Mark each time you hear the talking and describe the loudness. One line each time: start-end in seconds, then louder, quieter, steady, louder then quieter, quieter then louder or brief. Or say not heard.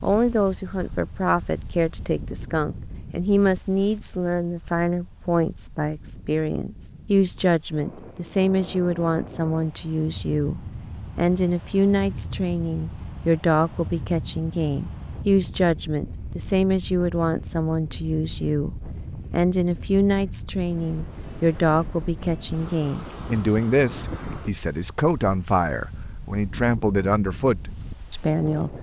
0.0-28.7 steady.